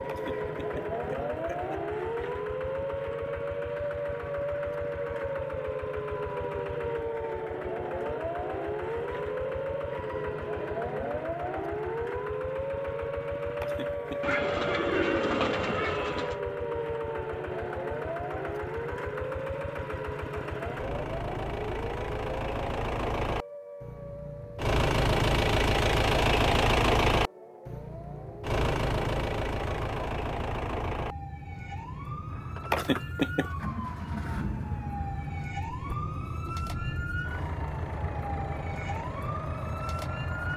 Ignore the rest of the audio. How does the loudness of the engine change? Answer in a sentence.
The loudness of the engine goes up, then down.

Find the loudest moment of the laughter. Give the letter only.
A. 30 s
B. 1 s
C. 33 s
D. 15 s
C.